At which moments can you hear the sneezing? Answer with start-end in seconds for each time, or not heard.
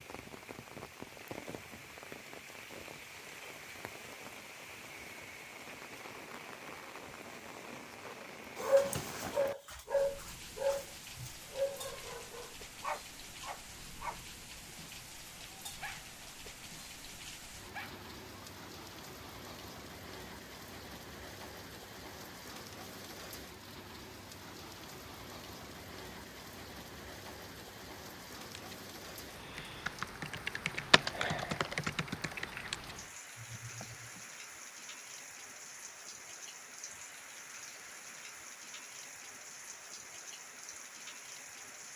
not heard.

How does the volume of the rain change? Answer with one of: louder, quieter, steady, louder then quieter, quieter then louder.
steady.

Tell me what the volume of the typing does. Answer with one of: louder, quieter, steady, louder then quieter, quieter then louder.
louder then quieter.